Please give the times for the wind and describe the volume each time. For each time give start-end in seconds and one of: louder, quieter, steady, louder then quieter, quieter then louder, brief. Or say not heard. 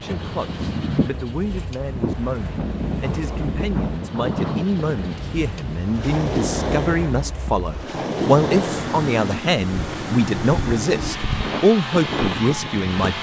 0.0-13.1 steady.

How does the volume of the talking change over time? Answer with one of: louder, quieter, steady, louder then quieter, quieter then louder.
louder.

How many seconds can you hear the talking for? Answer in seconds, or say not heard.
13 s.